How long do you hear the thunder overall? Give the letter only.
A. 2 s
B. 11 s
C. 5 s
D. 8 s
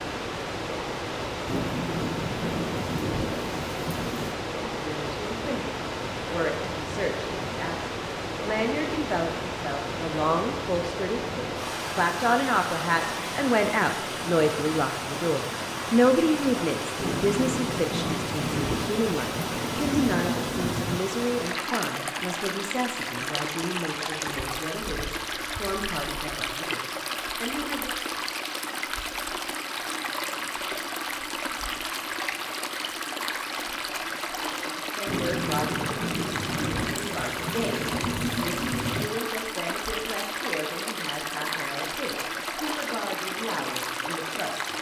B.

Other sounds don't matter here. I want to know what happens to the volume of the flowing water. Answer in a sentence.
The volume of the flowing water stays about the same.